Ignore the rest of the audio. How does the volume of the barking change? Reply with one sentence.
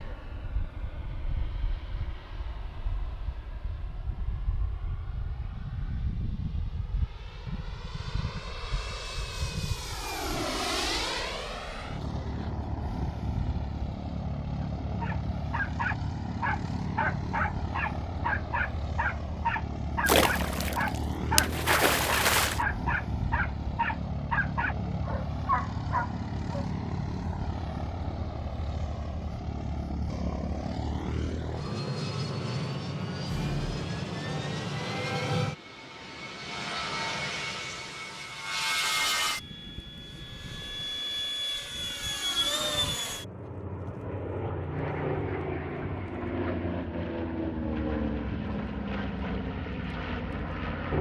The loudness of the barking stays about the same.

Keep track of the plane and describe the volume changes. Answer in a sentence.
The volume of the plane goes up.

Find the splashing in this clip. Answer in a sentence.
The splashing can be heard from 20.1 to 22.6 s.